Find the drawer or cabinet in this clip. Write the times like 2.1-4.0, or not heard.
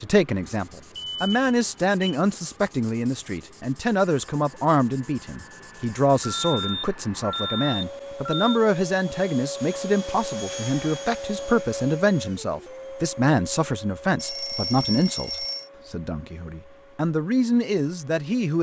not heard.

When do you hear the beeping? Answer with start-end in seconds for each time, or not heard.
0.9-2.0, 6.2-8.6, 14.2-15.7.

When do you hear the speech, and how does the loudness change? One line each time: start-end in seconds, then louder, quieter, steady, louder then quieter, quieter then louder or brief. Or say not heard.
0.0-18.5 steady.